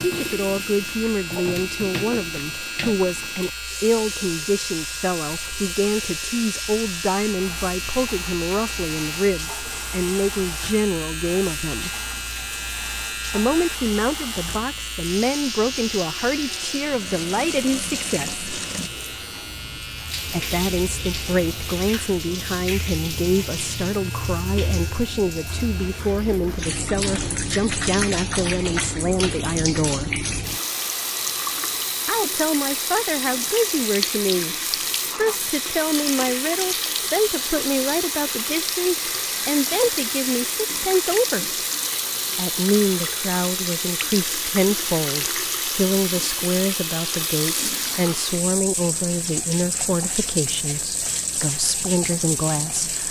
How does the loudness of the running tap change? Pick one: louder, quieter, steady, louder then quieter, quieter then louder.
louder.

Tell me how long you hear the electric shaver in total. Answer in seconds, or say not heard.
26 s.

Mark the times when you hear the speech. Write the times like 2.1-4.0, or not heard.
0.0-11.9, 13.3-18.4, 20.3-30.2, 32.0-34.5, 35.1-41.5, 42.4-53.0.